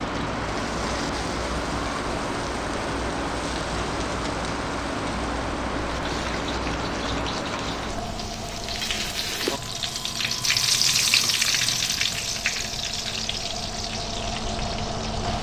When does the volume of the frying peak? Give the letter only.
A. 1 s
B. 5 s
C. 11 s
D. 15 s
C.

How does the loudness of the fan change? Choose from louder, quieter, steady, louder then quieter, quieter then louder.
quieter then louder.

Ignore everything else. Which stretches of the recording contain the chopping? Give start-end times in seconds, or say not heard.
not heard.